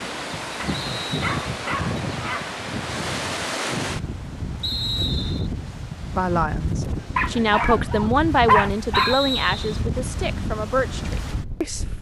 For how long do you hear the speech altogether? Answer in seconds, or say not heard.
6 s.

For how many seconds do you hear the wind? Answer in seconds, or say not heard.
12 s.